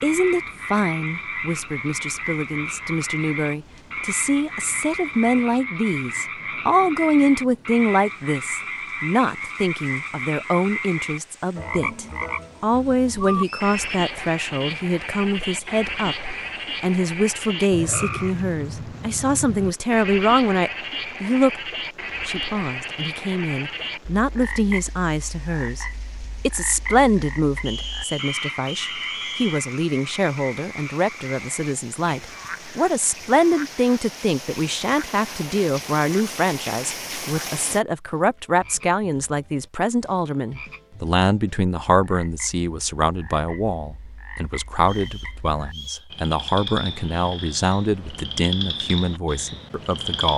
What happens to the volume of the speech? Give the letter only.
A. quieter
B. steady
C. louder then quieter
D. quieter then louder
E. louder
B.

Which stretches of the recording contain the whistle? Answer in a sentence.
You can hear the whistle from 13.2 to 13.8 s, from 27.6 to 29.6 s and from 44.9 to 46.1 s.